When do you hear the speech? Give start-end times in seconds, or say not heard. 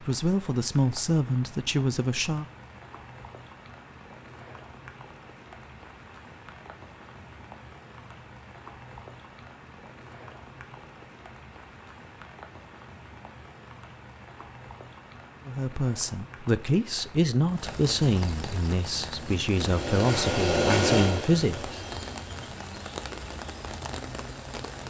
0.0-2.5, 15.4-21.8.